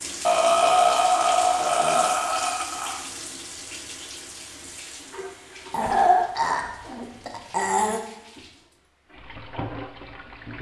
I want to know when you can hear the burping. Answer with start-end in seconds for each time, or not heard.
0.2-3.0, 5.7-8.0.